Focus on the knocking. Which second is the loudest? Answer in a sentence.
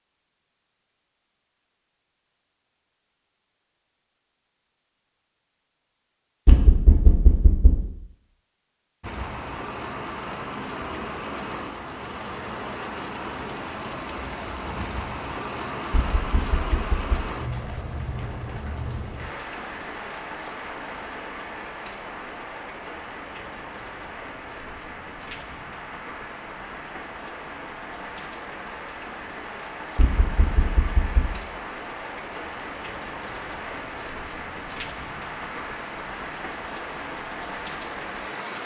The loudest moment of the knocking is at 7 seconds.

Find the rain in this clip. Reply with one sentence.
You can hear the rain from 9.0 to 38.6 s.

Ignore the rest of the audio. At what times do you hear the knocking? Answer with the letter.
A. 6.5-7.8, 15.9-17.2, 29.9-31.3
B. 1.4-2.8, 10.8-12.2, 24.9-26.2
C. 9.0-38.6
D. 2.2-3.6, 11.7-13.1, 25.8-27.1
A.